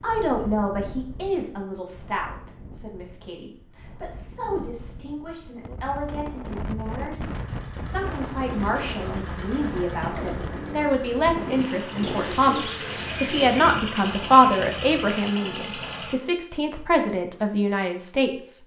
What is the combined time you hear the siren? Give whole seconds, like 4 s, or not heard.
not heard.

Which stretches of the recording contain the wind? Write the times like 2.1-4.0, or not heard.
0.0-12.2.